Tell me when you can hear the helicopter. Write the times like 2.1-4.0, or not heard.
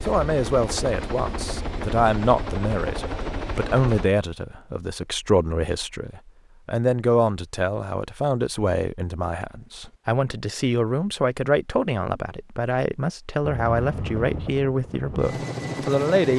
0.0-4.1, 13.4-16.3.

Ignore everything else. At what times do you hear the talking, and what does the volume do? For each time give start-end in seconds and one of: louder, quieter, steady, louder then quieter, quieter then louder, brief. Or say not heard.
0.0-16.3 steady.